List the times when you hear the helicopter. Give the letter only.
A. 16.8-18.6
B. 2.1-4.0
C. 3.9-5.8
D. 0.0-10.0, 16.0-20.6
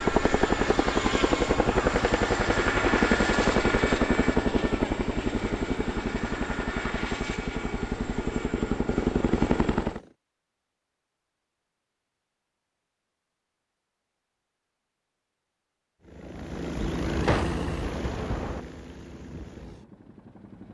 D.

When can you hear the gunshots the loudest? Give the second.
17 s.